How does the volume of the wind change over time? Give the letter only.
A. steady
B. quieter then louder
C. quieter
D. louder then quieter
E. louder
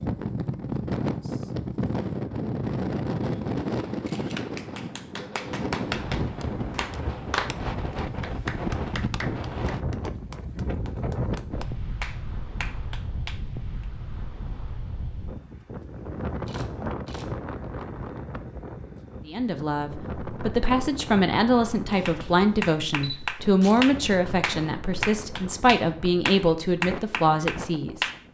C.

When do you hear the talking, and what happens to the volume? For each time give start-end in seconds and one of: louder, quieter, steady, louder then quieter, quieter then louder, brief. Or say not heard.
19.2-28.1 steady.